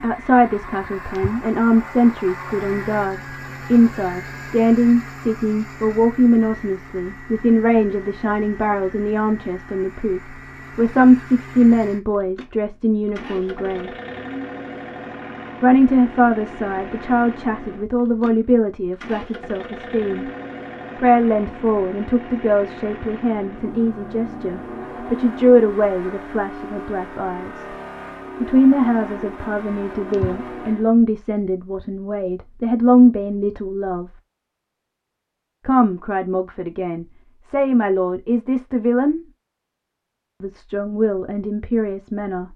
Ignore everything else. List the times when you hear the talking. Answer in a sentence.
The talking can be heard from 0.0 to 13.9 s, from 15.6 to 20.2 s, from 21.0 to 27.6 s, from 28.4 to 34.1 s, from 35.6 to 39.2 s and from 40.4 to 42.5 s.